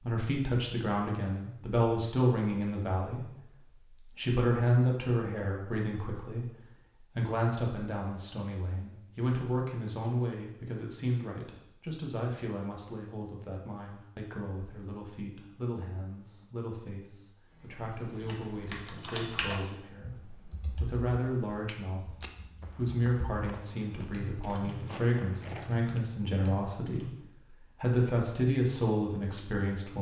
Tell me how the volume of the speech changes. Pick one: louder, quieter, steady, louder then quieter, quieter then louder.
quieter then louder.